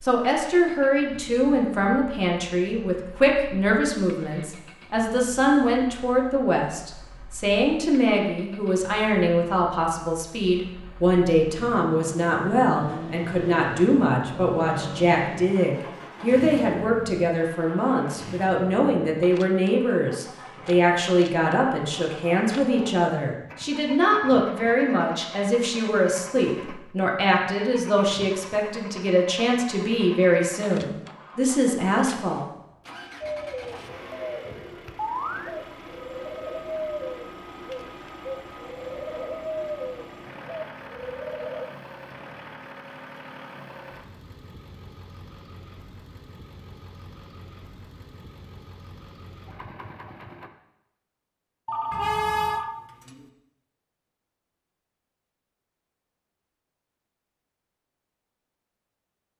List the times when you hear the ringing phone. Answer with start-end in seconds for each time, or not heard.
51.6-53.2.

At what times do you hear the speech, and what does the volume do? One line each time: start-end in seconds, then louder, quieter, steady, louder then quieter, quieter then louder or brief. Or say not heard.
0.0-32.5 steady.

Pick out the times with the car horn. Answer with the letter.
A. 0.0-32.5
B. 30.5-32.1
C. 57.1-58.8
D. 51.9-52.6
D.